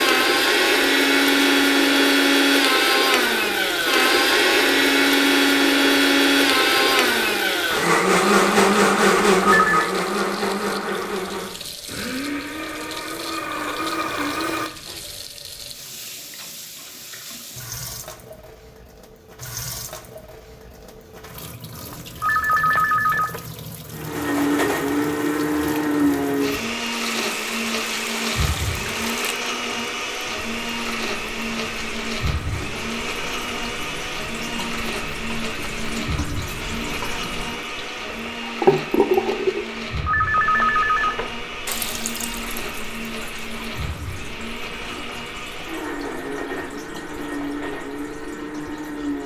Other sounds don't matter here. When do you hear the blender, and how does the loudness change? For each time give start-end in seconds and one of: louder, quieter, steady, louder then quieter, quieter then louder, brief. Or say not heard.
0.0-14.9 quieter
23.9-49.2 quieter.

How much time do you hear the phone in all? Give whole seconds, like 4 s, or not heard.
4 s.